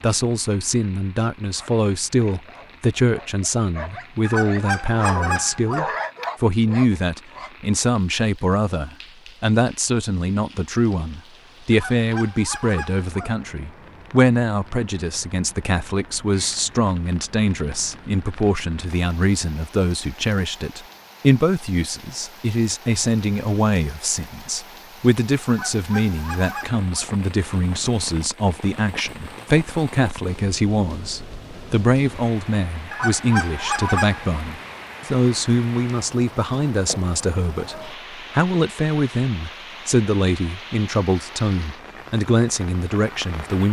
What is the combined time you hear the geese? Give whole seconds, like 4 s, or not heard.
6 s.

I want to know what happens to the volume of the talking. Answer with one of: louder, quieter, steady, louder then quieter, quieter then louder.
steady.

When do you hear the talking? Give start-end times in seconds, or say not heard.
0.0-43.6.